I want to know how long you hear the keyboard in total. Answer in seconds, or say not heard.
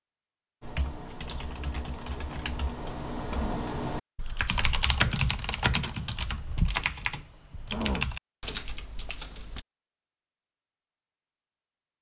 9 s.